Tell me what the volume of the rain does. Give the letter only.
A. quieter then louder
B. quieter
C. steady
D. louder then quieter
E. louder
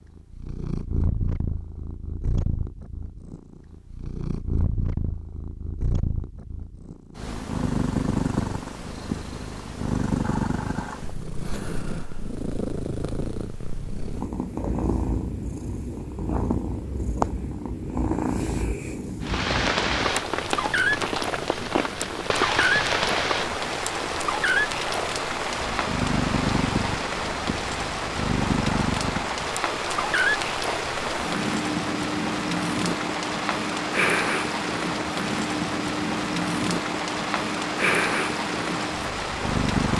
C.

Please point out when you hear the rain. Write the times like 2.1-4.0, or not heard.
19.2-39.9.